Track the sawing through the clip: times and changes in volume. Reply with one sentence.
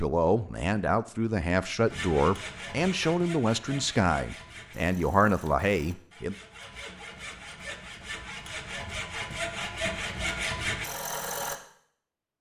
The sawing can be heard from 1.9 to 11.6 s, getting quieter then louder.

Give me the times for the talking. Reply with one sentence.
You can hear the talking from 0.0 to 6.3 s.